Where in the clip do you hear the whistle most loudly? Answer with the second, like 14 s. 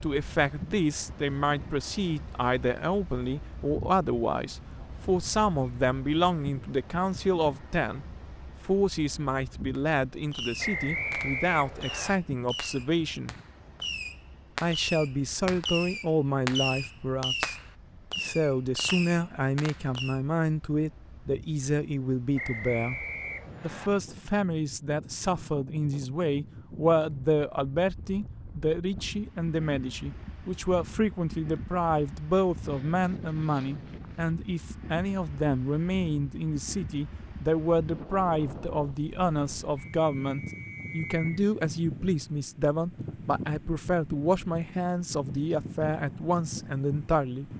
11 s.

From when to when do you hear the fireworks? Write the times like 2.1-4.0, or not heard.
9.8-20.2.